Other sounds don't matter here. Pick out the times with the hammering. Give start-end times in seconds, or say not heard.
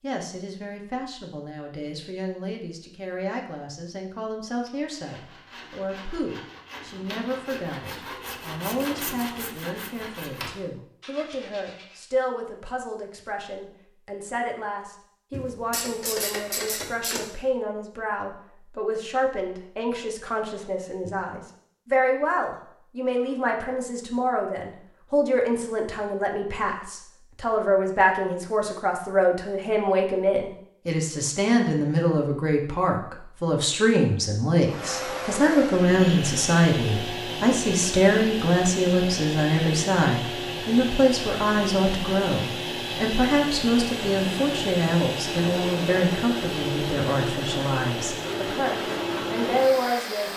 not heard.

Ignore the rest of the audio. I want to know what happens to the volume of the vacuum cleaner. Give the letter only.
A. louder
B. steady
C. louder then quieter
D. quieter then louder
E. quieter
B.